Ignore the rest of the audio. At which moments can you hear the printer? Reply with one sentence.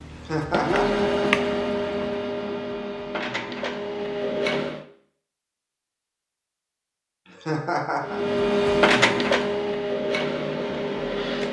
You can hear the printer from 0.0 to 4.8 s and from 8.0 to 11.4 s.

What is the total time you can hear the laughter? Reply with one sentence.
The laughter can be heard for 2 seconds in total.